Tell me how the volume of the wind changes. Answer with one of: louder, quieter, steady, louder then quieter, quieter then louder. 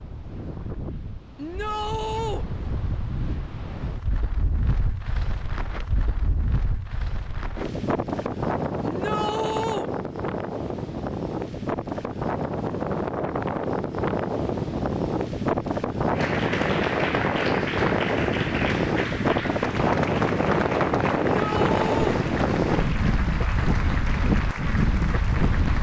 louder.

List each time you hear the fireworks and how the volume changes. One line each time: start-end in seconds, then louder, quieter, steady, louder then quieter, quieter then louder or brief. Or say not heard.
not heard.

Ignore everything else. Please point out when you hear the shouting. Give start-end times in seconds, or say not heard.
1.4-2.5, 8.8-9.9, 21.4-22.2.